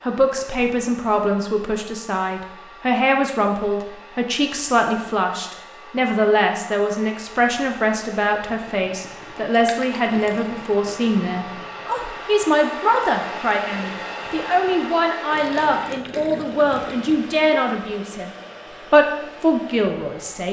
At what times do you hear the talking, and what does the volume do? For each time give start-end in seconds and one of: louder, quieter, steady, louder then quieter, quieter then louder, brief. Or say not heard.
0.0-18.3 steady
18.9-20.4 brief.